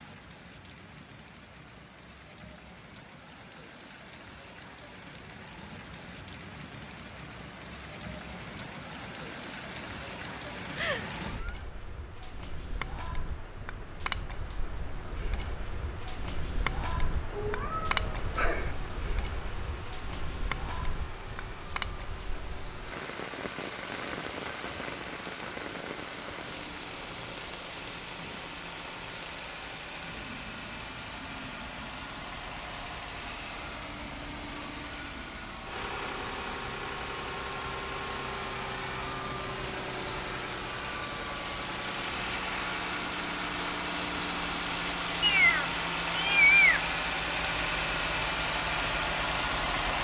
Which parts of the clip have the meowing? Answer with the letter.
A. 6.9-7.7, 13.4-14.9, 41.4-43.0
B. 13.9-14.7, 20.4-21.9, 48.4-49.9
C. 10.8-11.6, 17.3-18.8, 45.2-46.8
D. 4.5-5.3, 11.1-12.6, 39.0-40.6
C.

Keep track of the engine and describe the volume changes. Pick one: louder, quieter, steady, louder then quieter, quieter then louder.
louder.